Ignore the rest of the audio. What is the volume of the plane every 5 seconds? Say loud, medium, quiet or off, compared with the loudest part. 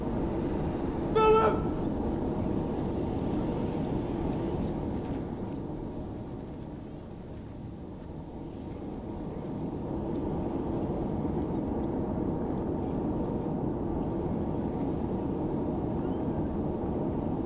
loud, medium, loud, loud.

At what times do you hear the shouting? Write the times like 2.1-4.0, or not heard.
1.1-1.6.